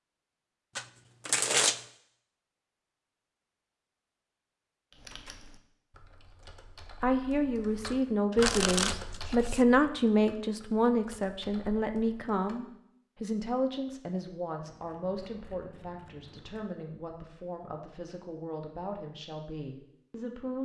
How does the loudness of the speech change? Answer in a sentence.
The loudness of the speech goes down.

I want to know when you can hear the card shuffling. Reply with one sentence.
The card shuffling can be heard from 0.8 to 1.9 s, from 7.8 to 9.6 s and from 14.7 to 16.8 s.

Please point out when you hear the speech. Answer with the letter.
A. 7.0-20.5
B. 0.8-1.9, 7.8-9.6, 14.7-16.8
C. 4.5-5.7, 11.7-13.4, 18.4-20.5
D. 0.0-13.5
A.